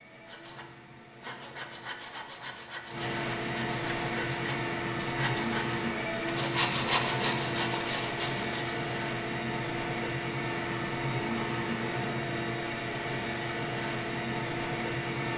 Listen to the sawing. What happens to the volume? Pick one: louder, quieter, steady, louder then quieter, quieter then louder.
louder.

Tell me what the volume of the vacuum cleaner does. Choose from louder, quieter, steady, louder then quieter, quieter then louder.
louder.